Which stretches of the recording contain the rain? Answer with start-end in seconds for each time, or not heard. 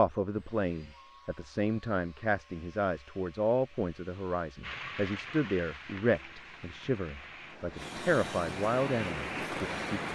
4.6-10.1.